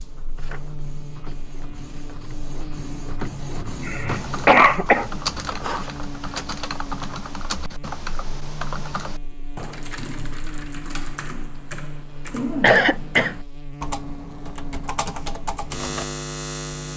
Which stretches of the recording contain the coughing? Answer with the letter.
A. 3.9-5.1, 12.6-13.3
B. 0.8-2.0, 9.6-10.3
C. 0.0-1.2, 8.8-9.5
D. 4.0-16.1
A.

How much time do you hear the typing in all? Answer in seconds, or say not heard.
12 s.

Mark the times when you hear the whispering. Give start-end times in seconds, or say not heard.
not heard.